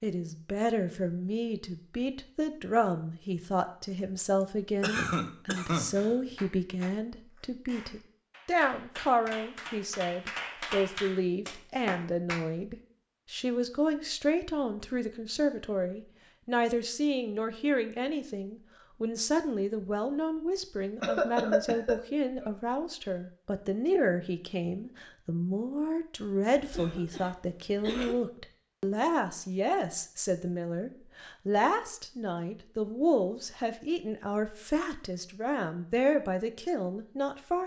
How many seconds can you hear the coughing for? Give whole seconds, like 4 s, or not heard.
5 s.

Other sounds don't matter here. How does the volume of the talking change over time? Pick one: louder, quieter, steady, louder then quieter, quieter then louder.
steady.